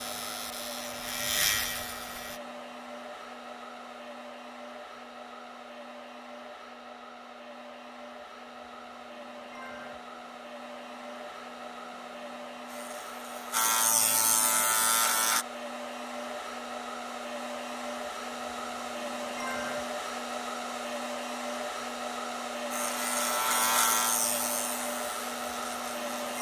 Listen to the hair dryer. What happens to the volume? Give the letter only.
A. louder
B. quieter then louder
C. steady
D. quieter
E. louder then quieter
A.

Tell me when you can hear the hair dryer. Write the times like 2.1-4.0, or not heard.
0.0-26.3.